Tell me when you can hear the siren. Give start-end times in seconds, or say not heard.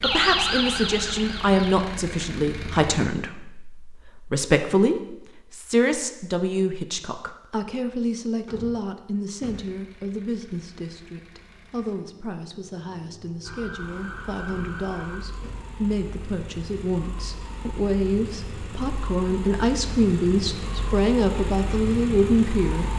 0.0-1.9, 13.4-22.9.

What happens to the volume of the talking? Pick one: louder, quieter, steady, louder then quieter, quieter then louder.
quieter then louder.